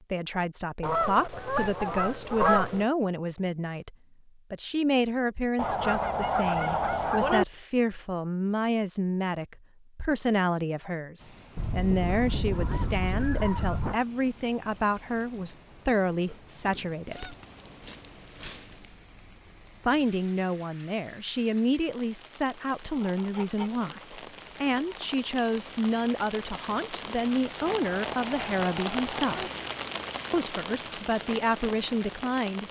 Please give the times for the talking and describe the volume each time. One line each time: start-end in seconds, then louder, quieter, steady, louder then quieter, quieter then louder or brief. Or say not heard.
0.1-17.4 steady
19.9-29.4 steady
30.3-32.6 brief.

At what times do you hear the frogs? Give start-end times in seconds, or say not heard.
not heard.